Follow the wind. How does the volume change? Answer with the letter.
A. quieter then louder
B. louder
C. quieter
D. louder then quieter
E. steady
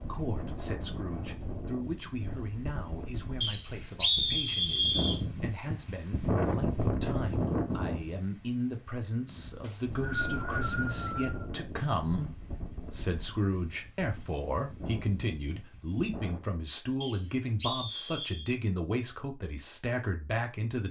D.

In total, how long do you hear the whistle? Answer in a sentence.
You can hear the whistle for 5 seconds altogether.